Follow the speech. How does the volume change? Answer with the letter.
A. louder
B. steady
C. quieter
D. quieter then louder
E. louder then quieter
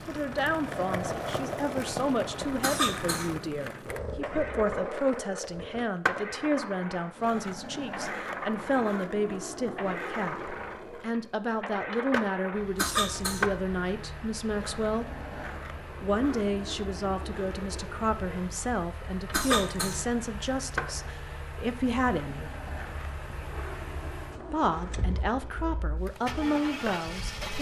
B.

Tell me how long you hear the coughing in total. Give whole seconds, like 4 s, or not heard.
2 s.